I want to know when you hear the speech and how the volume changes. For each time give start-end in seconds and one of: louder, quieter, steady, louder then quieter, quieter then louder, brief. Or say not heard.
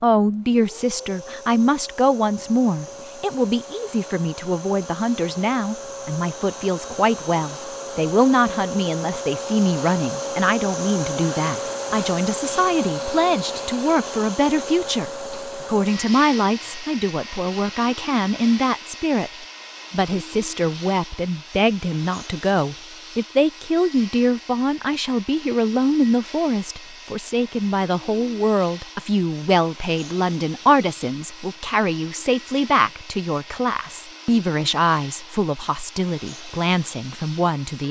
0.0-37.8 steady.